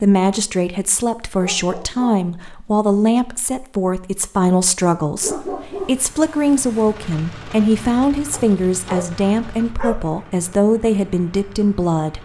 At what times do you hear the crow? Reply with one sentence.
The crow can't be heard in this clip.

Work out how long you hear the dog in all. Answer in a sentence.
You can hear the dog for 4 seconds altogether.